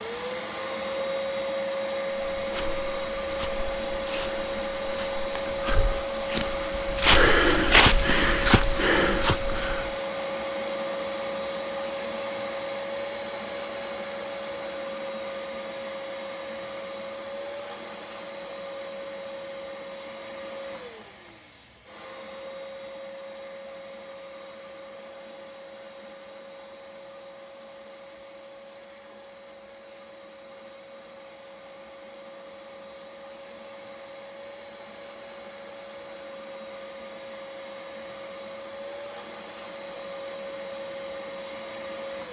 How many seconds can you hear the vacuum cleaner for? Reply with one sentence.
You can hear the vacuum cleaner for 42 seconds altogether.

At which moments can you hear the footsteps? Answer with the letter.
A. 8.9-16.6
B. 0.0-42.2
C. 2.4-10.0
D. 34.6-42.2
C.